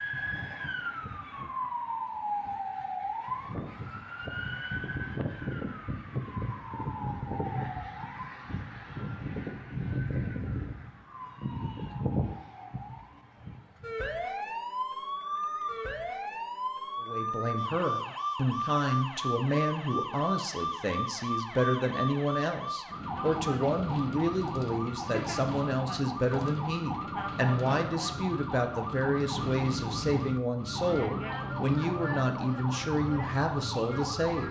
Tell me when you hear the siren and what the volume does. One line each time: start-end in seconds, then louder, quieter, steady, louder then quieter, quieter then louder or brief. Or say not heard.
0.0-34.4 steady.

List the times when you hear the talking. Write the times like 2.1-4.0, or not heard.
17.0-34.4.